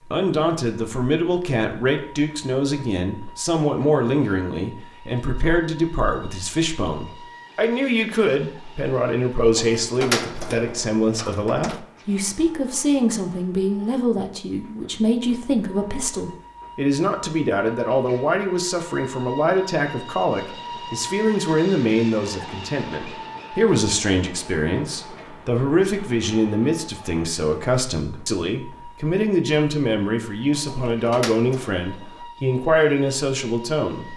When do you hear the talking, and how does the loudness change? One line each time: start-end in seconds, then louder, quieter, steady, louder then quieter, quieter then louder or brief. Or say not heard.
0.1-34.1 steady.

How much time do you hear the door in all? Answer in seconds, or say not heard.
4 s.